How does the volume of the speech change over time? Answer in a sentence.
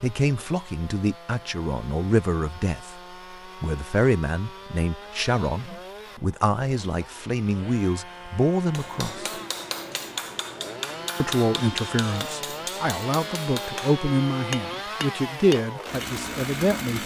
The volume of the speech stays about the same.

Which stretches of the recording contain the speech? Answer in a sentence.
You can hear the speech from 0.0 to 9.3 s and from 11.2 to 17.0 s.